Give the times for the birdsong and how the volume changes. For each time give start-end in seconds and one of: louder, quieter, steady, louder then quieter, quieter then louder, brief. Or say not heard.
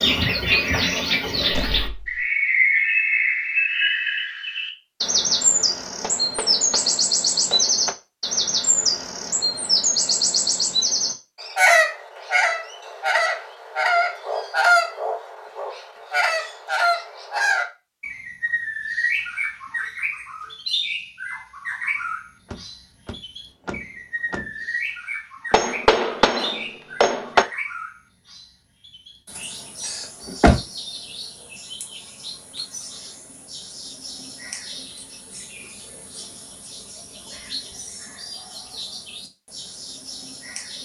0.0-40.7 quieter.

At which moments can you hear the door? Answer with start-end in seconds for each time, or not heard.
1.4-2.2, 22.5-24.5, 29.8-30.6.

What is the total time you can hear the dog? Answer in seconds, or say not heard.
not heard.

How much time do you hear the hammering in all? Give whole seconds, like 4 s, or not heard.
4 s.